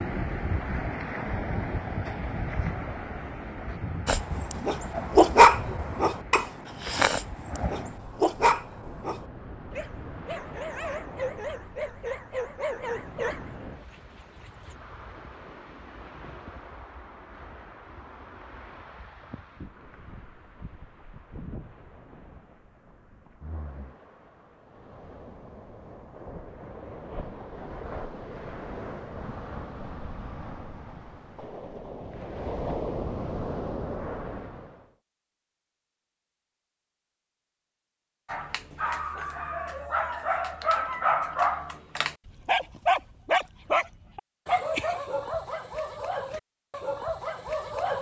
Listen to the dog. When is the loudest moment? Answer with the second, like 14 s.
5 s.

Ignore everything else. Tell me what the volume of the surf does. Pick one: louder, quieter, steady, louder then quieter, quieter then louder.
quieter then louder.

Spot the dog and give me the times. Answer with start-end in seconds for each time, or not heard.
4.0-14.8, 38.2-47.9.